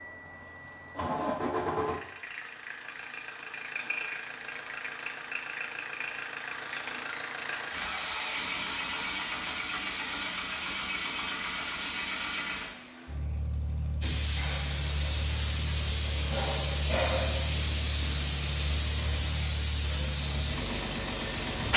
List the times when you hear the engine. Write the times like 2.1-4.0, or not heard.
0.0-21.7.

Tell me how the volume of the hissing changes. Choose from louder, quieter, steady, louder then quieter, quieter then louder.
steady.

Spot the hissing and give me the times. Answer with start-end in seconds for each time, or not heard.
14.0-21.7.